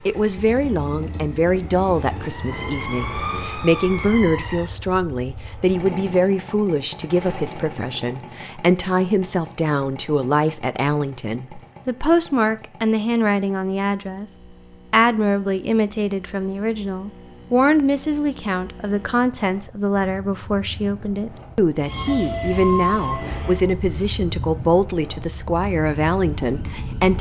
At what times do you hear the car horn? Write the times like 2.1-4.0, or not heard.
not heard.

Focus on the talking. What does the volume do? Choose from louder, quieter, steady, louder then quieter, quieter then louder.
steady.